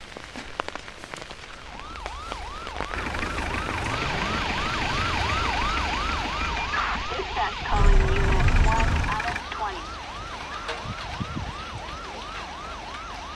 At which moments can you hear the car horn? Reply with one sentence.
The car horn can be heard from 7.7 to 9.2 s.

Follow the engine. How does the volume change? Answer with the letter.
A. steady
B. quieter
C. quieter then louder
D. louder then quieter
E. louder
C.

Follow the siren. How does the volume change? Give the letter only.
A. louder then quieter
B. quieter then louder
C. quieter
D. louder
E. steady
A.